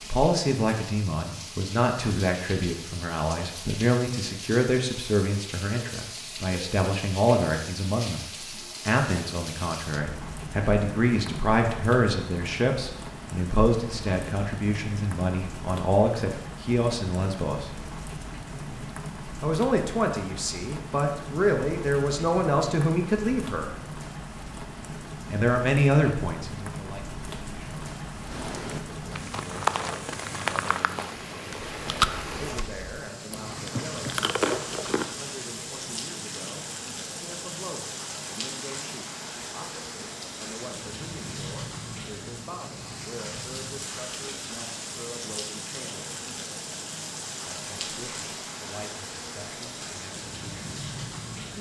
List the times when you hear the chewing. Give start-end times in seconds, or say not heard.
28.2-35.1.